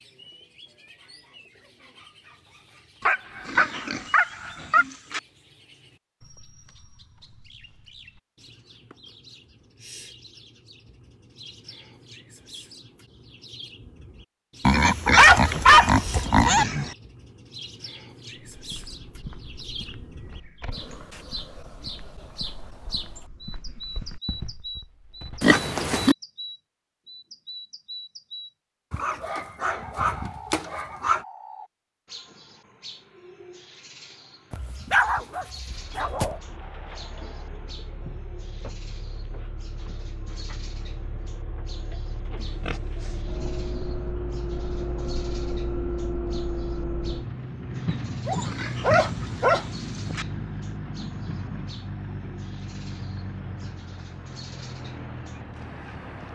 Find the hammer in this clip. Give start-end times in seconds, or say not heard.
not heard.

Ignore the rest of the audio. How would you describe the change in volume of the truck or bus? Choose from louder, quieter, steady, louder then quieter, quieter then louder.
louder then quieter.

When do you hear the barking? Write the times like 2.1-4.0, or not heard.
3.0-4.8, 15.2-16.9, 28.9-31.2, 34.5-36.4, 48.2-50.1.